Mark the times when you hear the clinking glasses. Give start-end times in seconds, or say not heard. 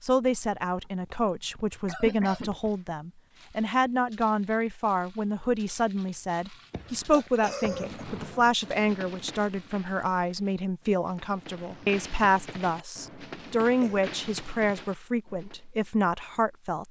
not heard.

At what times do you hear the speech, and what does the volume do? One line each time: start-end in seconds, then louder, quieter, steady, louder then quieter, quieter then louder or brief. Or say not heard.
0.0-16.8 steady.